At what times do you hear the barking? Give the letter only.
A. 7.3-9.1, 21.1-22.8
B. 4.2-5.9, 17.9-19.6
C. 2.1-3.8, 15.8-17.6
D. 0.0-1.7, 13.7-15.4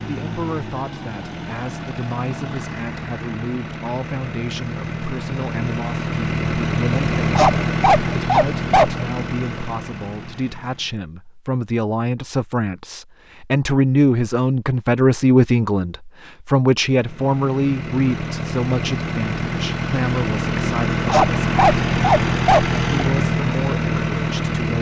A.